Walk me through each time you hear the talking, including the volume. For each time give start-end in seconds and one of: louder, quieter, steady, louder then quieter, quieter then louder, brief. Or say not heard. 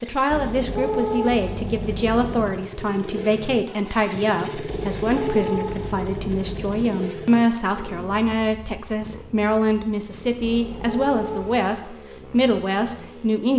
0.0-13.5 steady.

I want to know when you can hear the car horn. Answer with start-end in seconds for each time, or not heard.
0.2-2.5, 4.7-6.9, 10.4-11.6.